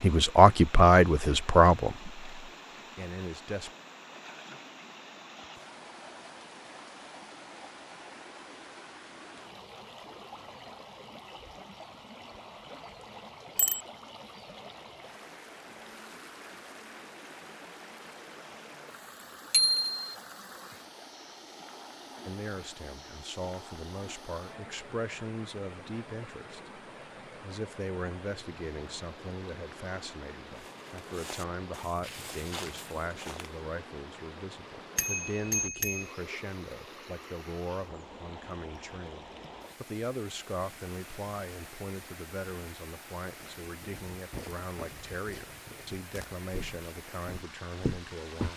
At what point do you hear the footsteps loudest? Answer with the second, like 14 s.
48 s.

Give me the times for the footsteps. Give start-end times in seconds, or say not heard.
30.6-33.6, 43.6-48.5.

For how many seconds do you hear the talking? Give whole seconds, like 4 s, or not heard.
29 s.